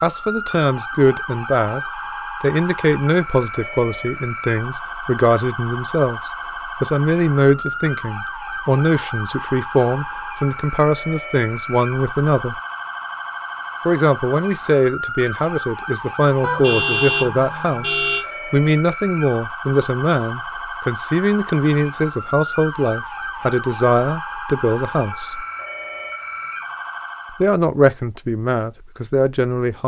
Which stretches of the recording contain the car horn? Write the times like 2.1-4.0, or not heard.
16.4-18.2.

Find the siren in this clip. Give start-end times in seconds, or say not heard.
0.0-27.6.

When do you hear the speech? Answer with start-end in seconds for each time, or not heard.
0.0-1.8, 2.4-12.6, 13.8-25.4, 27.4-29.8.